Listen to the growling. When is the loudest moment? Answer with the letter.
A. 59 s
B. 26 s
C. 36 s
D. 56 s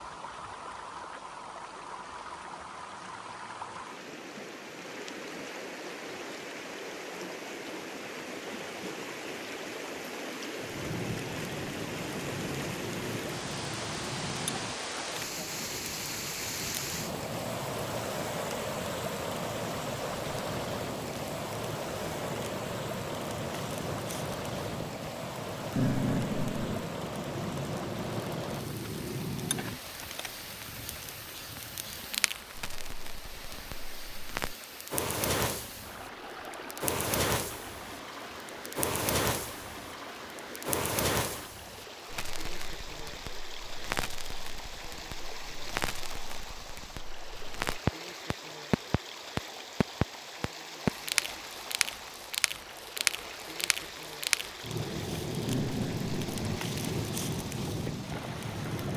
B.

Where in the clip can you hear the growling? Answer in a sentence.
You can hear the growling from 25.8 to 26.9 s and from 55.5 to 56.6 s.